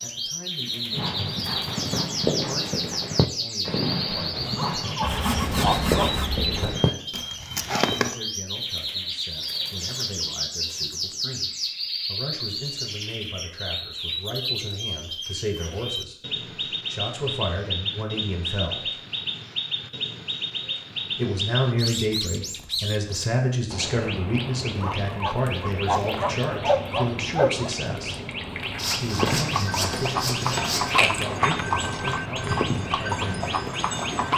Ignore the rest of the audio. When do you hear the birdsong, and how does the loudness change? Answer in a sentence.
You can hear the birdsong from 0.0 to 34.3 s, at a steady volume.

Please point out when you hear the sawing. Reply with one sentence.
You can hear the sawing from 5.0 to 6.7 s and from 28.8 to 31.0 s.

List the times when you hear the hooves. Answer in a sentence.
The hooves can be heard from 0.9 to 8.2 s and from 29.1 to 34.3 s.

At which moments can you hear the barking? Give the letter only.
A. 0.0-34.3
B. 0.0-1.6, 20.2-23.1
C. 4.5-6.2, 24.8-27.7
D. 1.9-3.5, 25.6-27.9
C.